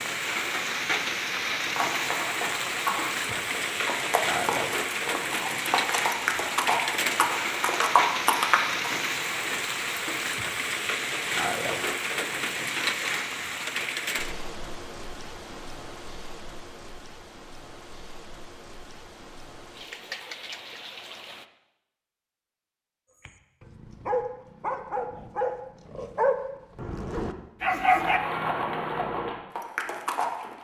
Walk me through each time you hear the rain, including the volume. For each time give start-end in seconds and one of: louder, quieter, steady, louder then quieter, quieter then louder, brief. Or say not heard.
0.0-21.4 quieter.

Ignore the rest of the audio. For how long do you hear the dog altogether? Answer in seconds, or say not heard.
5 s.